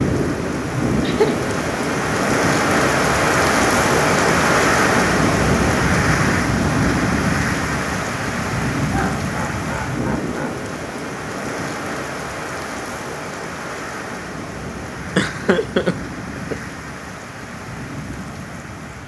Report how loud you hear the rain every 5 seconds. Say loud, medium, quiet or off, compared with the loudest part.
loud, loud, medium, quiet.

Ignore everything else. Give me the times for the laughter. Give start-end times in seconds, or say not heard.
1.0-1.4, 8.8-10.6, 15.2-16.6.